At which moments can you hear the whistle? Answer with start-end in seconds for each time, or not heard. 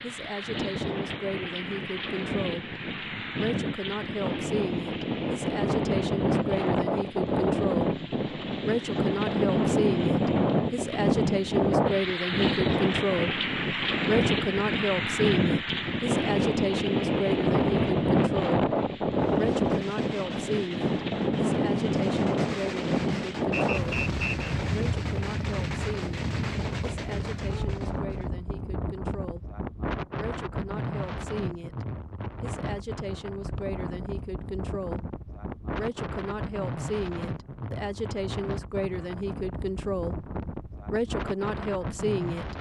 23.5-24.4.